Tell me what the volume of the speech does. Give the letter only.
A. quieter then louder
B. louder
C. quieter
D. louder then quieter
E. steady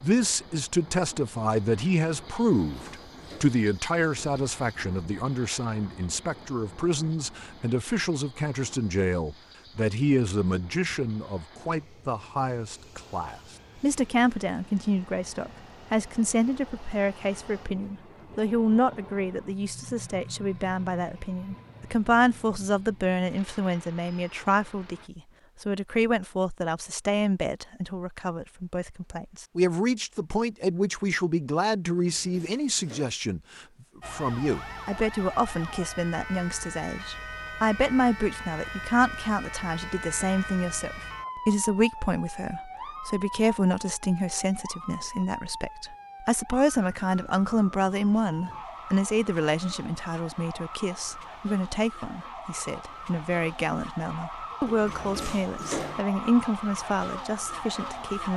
E.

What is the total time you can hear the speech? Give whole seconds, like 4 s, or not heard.
58 s.